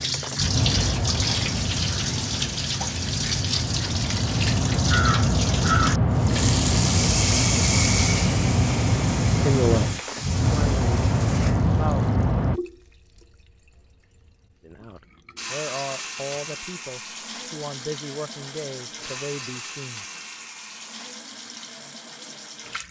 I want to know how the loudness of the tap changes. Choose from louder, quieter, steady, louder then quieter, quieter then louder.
quieter.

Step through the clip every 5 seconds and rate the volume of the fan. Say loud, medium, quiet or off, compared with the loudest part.
medium, loud, loud, off, off.